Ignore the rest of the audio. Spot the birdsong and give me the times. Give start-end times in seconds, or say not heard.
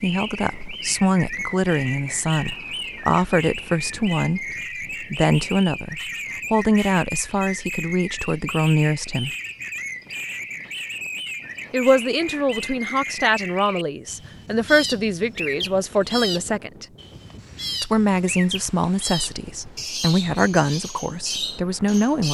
0.0-22.2.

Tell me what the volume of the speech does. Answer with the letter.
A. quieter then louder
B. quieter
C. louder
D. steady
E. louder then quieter
D.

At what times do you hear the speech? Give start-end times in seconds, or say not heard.
0.0-9.3, 11.7-16.9, 17.8-22.2.